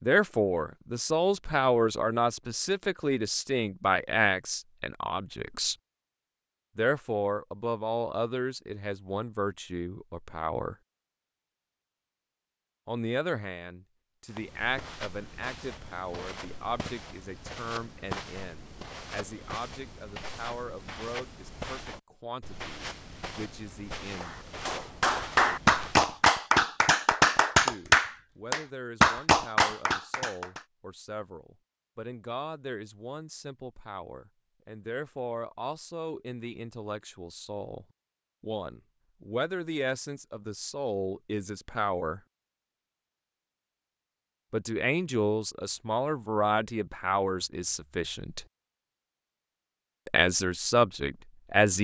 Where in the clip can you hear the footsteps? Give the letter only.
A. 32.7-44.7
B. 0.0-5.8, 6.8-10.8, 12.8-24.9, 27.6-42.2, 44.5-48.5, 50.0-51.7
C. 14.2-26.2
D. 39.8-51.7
C.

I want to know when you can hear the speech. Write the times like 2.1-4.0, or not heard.
0.0-5.8, 6.8-10.8, 12.8-24.9, 27.6-42.2, 44.5-48.5, 50.0-51.7.